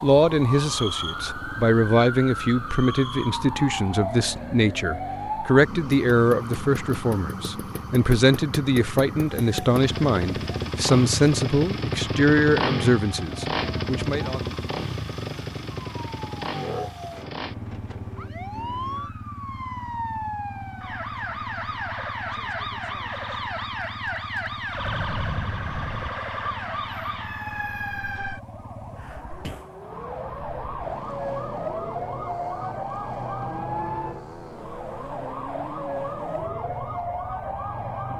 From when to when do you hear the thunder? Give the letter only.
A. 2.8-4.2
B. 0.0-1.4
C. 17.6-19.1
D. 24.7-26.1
D.